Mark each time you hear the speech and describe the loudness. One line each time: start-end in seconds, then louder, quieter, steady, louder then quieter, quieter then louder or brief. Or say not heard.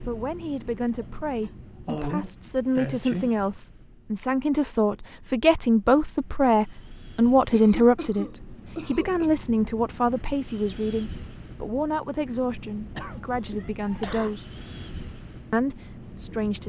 0.0-14.5 louder then quieter
15.5-16.6 brief.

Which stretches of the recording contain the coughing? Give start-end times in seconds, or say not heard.
1.0-3.4, 7.5-9.3, 12.9-14.3.